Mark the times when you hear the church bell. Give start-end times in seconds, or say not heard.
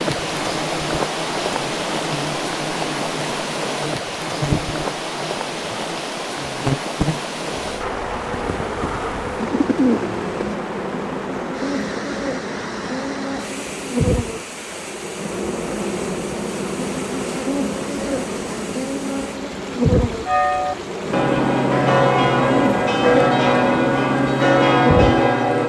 20.2-25.6.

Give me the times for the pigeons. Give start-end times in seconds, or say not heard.
9.4-10.6.